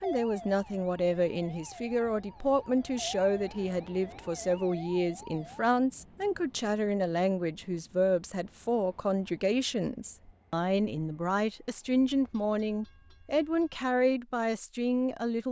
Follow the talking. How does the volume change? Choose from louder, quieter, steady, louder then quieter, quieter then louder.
steady.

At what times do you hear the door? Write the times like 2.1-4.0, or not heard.
not heard.